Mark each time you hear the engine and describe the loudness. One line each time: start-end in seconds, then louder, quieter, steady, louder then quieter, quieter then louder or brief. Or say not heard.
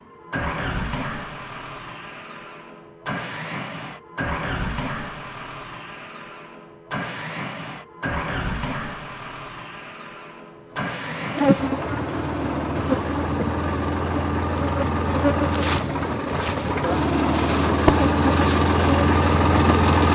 0.0-20.0 louder.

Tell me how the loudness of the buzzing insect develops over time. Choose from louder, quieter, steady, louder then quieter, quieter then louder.
quieter then louder.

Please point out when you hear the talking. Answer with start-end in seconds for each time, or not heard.
not heard.